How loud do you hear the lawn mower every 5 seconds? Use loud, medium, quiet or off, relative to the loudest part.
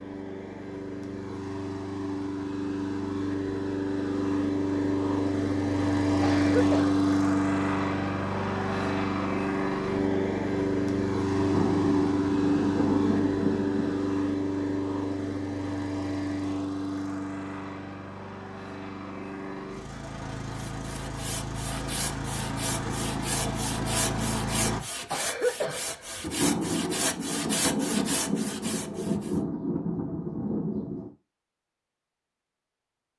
medium, loud, loud, medium, medium, off, off.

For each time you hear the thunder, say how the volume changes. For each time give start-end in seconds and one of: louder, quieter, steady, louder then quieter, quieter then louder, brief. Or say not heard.
11.3-14.0 brief
26.2-31.1 steady.